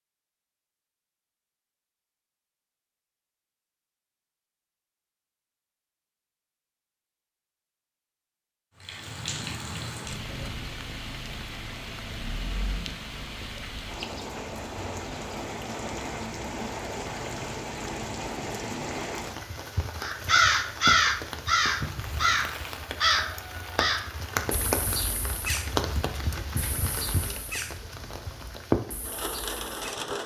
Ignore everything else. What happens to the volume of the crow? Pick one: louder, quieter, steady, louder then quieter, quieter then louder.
quieter.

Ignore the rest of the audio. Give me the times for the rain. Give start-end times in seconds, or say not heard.
8.8-30.2.